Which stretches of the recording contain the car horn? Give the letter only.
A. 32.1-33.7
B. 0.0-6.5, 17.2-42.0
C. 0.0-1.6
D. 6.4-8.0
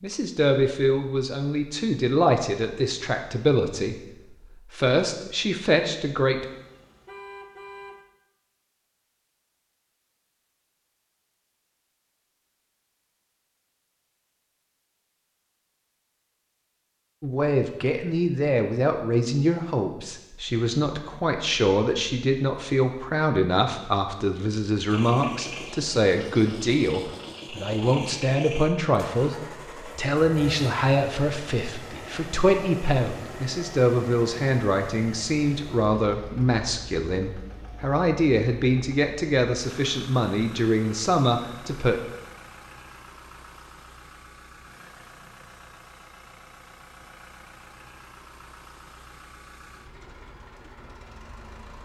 D.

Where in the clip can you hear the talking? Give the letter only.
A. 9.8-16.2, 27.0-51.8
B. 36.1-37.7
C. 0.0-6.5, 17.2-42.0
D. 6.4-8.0
C.